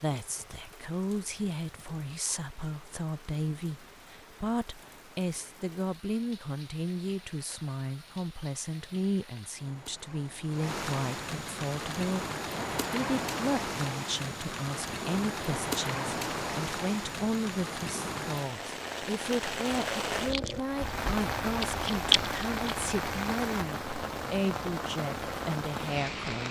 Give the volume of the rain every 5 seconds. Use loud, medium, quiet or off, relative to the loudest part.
quiet, quiet, loud, loud, loud, loud.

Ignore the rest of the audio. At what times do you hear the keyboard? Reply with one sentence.
You can't hear the keyboard here.